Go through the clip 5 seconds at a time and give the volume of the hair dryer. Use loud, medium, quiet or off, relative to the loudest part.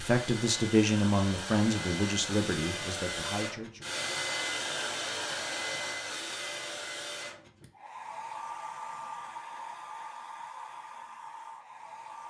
loud, loud, medium.